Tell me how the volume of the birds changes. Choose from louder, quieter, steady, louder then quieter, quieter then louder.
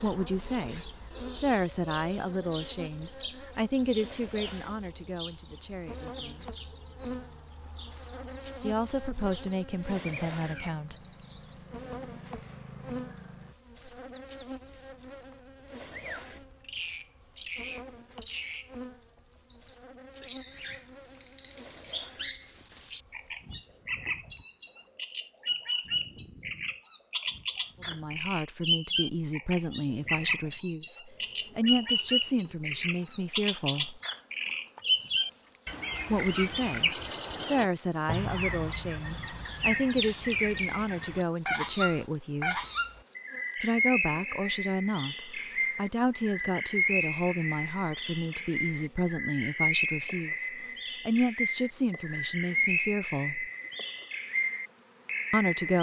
louder.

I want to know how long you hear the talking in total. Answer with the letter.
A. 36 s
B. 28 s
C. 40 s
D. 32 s
D.